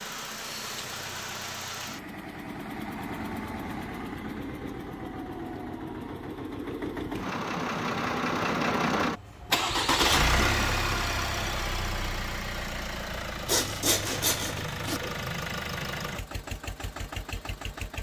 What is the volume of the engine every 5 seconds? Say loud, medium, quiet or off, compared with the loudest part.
medium, loud, loud, medium.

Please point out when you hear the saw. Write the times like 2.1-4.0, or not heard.
13.4-15.0.